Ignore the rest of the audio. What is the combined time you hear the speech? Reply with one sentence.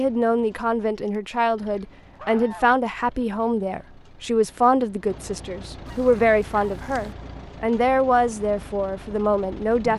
The speech can be heard for 10 seconds in total.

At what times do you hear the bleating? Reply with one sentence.
You can't hear the bleating here.